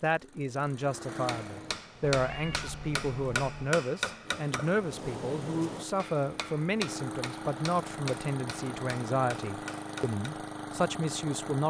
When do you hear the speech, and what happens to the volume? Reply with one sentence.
You can hear the speech from 0.0 to 11.6 s, at a steady volume.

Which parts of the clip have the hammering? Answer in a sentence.
You can hear the hammering from 1.1 to 10.5 s.